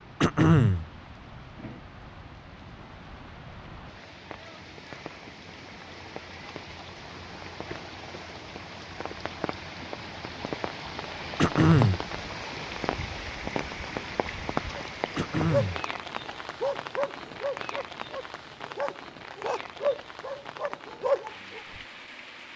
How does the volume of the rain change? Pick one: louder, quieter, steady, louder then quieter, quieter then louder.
louder then quieter.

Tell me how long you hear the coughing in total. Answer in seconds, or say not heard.
2 s.